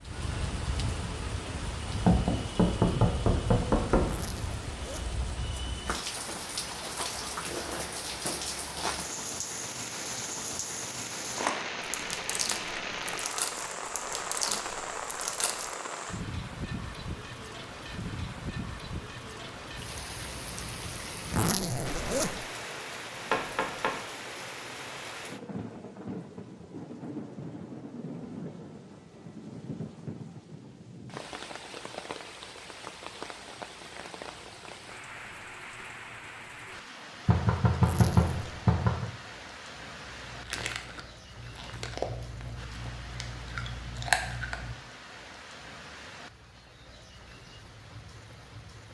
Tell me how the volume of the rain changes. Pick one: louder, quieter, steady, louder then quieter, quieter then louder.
quieter.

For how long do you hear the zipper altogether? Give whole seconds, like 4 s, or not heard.
3 s.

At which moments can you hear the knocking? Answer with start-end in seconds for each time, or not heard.
1.9-4.1, 23.3-23.9, 37.2-39.0.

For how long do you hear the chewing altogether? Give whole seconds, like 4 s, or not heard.
9 s.